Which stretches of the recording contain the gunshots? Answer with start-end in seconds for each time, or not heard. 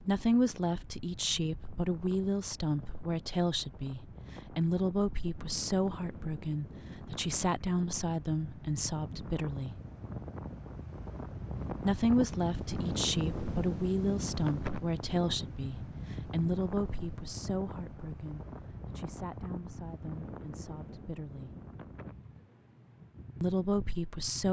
not heard.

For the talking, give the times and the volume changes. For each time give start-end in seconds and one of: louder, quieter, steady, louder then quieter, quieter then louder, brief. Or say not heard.
0.0-9.8 steady
11.8-21.5 quieter
23.4-24.4 brief.